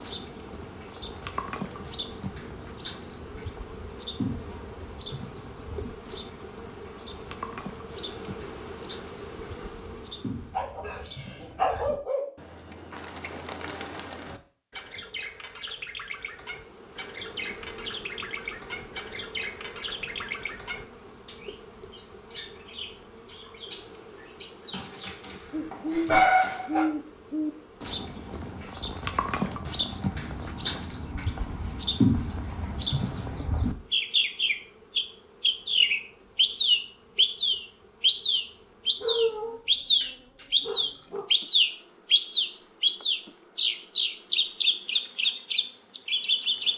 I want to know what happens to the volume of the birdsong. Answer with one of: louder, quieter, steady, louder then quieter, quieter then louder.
louder.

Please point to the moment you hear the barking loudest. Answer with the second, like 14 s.
26 s.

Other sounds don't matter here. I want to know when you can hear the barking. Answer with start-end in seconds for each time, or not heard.
10.5-12.2, 24.7-26.9, 39.0-41.2.